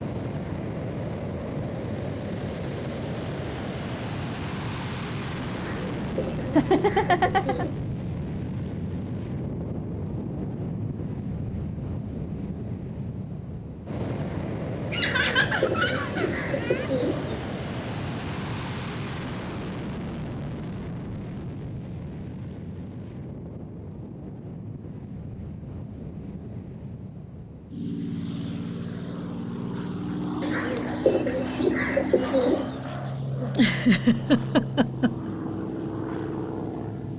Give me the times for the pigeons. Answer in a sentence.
The pigeons can be heard from 5.5 to 7.8 s, from 14.9 to 17.4 s and from 30.4 to 32.8 s.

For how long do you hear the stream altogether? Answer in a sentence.
The stream can't be heard in this clip.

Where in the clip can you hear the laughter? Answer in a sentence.
You can hear the laughter from 6.5 to 7.7 s, from 14.9 to 16.9 s and from 33.4 to 35.3 s.